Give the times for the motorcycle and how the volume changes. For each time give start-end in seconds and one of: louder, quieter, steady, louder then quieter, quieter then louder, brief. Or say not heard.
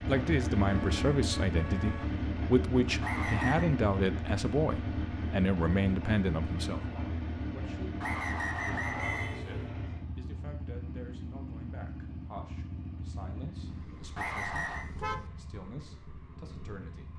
0.0-17.1 quieter.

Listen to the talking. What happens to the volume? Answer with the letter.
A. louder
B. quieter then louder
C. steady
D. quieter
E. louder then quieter
D.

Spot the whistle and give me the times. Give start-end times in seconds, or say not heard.
3.0-3.7, 8.0-9.4, 14.2-14.8.